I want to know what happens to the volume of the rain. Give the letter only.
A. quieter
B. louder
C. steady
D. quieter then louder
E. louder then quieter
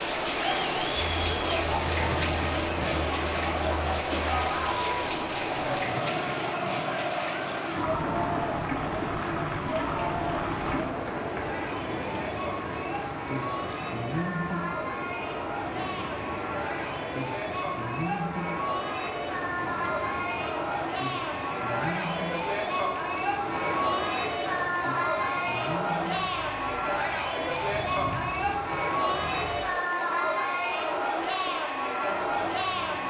A.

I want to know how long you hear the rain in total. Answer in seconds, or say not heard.
33 s.